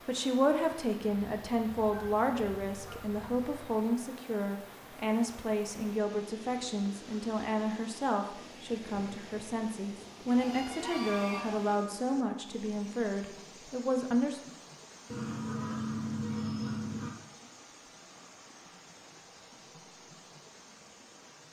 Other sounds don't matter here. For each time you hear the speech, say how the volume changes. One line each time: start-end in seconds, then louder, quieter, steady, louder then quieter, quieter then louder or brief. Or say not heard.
0.1-14.4 steady.